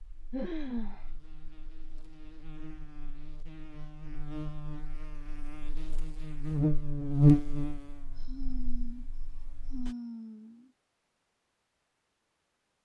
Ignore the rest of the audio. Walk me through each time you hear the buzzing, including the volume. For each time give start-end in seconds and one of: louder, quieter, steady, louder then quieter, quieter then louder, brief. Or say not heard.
0.0-9.9 louder then quieter.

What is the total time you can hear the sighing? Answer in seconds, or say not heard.
3 s.